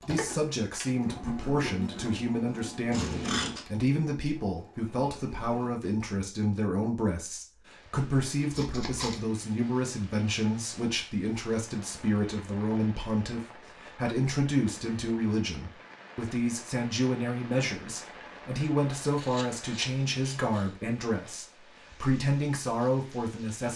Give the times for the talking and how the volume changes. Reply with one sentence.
The talking can be heard from 0.0 to 23.7 s, at a steady volume.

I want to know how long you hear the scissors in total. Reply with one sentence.
You can hear the scissors for 3 seconds altogether.